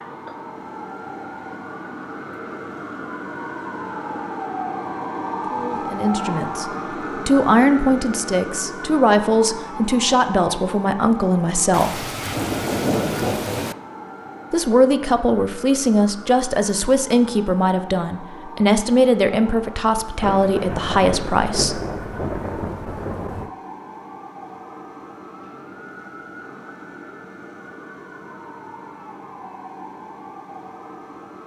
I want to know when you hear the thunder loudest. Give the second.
13 s.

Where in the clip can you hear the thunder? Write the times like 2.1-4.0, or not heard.
11.7-13.8, 20.2-23.5.